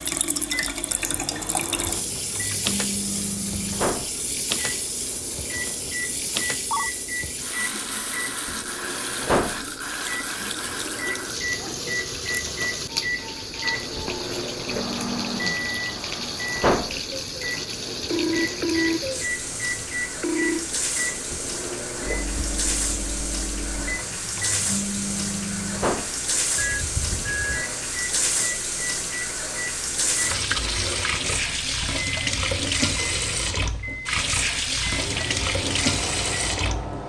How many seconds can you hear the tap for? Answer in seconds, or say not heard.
37 s.